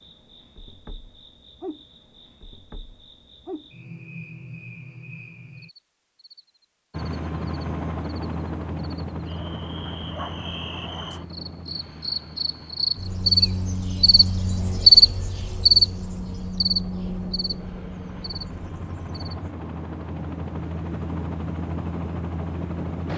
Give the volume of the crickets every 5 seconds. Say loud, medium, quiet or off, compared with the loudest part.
quiet, quiet, loud, loud, off.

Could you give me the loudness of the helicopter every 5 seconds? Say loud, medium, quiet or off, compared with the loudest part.
off, loud, medium, medium, loud.